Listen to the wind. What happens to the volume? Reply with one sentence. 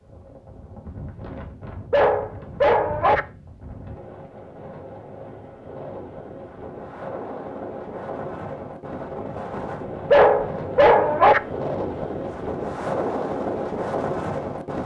The loudness of the wind goes up.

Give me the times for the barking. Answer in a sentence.
The barking can be heard from 1.9 to 3.2 s and from 10.1 to 11.4 s.